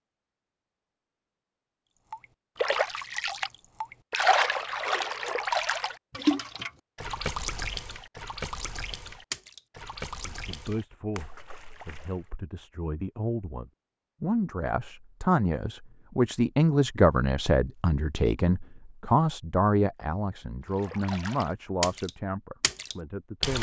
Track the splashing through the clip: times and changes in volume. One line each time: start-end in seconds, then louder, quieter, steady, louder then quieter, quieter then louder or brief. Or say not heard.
2.1-12.3 quieter
20.6-23.5 brief.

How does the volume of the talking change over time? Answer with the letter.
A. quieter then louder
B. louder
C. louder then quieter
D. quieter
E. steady
C.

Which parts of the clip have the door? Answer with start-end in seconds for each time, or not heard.
not heard.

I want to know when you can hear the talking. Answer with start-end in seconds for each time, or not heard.
10.2-23.5.